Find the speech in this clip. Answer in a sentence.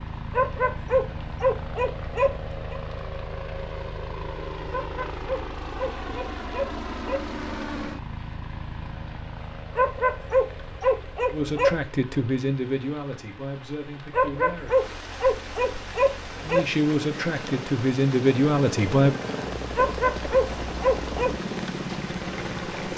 The speech can be heard from 11.3 to 14.8 s and from 16.4 to 19.1 s.